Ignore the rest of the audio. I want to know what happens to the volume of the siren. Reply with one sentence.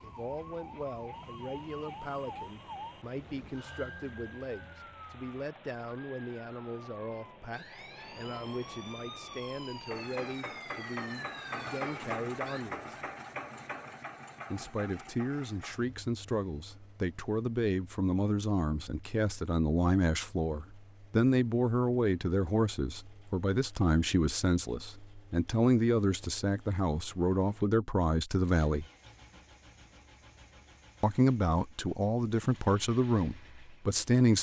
The loudness of the siren goes down, then up.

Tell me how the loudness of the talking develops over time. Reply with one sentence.
The loudness of the talking goes up.